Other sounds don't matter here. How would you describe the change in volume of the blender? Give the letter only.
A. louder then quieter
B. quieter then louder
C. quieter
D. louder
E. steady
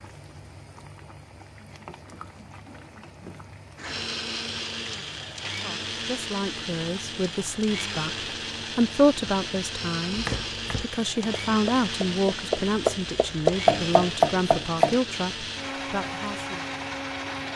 E.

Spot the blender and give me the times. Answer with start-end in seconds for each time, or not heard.
3.8-17.5.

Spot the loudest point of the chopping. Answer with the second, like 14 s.
14 s.